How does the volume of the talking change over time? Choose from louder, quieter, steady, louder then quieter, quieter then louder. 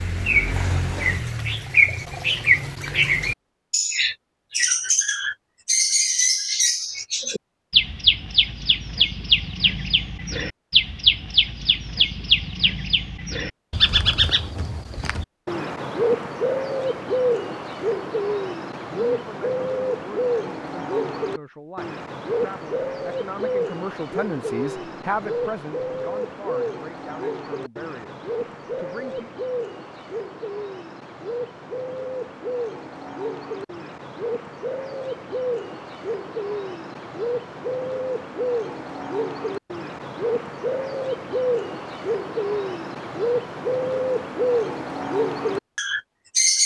louder then quieter.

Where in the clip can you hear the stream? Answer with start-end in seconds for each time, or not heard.
not heard.